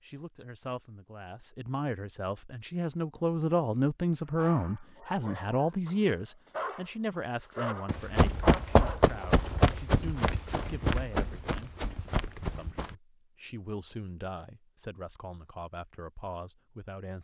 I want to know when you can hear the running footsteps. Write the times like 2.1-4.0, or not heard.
7.8-12.9.